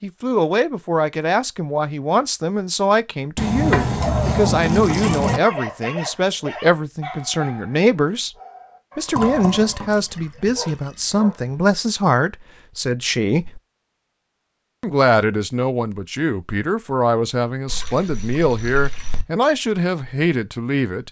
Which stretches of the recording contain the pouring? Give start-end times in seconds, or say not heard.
3.4-5.4, 9.2-10.2, 17.6-19.2.